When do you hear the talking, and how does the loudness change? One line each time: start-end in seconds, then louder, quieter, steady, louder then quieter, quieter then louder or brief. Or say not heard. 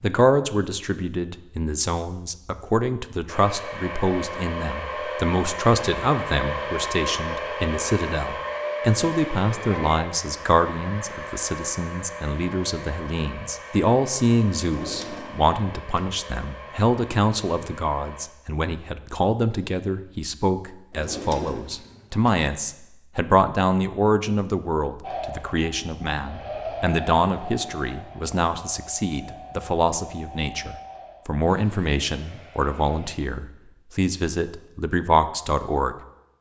0.0-36.0 steady.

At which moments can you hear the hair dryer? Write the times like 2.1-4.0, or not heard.
3.2-18.2, 25.0-33.1.